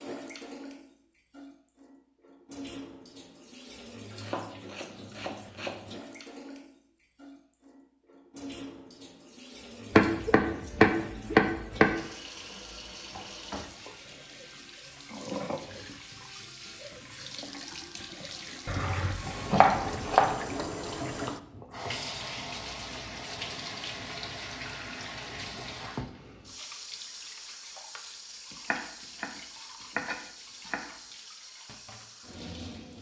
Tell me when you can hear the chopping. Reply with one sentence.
The chopping can be heard from 4.2 to 5.8 s, from 9.9 to 11.9 s, from 18.6 to 20.3 s, from 28.7 to 29.3 s and from 29.9 to 30.9 s.